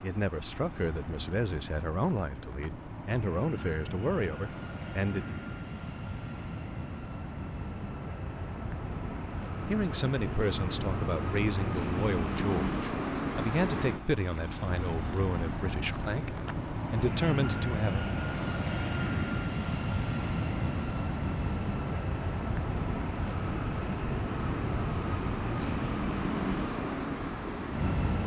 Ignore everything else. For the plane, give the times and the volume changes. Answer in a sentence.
The plane can be heard from 0.0 to 28.2 s, getting louder.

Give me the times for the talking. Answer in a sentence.
You can hear the talking from 0.0 to 5.3 s and from 9.7 to 18.0 s.